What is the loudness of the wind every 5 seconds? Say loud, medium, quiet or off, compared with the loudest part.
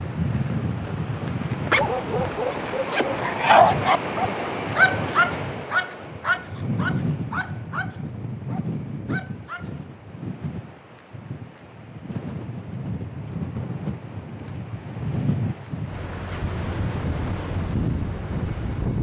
loud, loud, medium, loud.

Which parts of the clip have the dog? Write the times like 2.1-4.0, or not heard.
1.8-9.7.